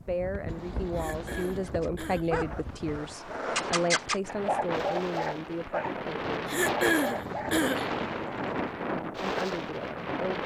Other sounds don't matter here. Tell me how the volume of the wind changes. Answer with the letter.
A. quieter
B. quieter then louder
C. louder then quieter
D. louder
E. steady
D.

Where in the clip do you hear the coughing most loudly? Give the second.
7 s.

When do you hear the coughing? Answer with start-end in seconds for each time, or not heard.
0.9-2.4, 6.5-7.9.